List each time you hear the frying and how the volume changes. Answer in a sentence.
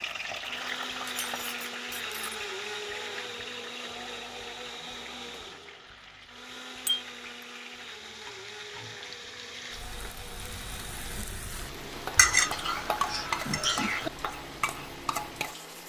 The frying can be heard from 0.0 to 15.8 s, getting quieter then louder.